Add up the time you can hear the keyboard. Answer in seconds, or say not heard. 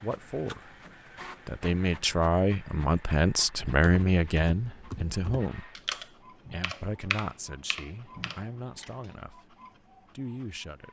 5 s.